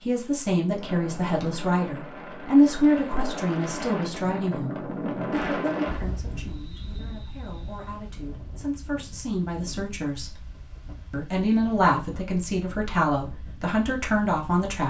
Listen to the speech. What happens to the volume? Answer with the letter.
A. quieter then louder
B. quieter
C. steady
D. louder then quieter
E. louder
A.